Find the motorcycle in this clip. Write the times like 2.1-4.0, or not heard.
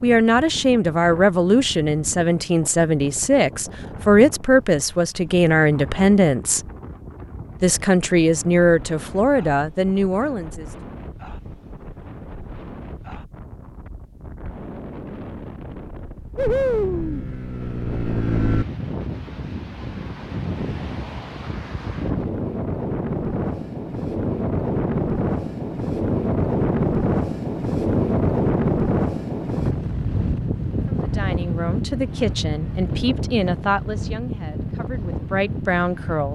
16.4-18.6.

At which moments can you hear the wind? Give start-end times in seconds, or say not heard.
0.0-36.2.